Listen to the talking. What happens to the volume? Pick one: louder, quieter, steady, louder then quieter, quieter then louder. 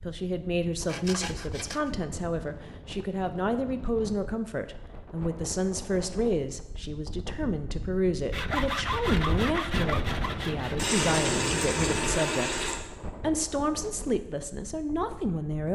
steady.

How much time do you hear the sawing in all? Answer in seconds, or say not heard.
4 s.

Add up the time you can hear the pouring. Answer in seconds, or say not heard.
2 s.